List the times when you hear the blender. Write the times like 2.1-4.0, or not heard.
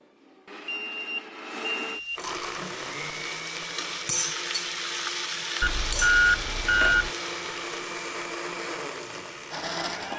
0.0-10.1.